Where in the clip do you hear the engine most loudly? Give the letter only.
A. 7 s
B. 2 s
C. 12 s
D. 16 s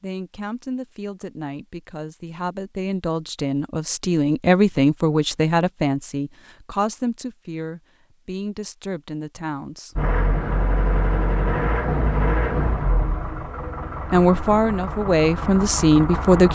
C.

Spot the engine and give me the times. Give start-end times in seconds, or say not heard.
9.9-16.5.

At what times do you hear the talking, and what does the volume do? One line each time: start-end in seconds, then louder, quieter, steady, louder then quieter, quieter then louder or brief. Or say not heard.
0.0-9.9 louder then quieter
14.1-16.5 brief.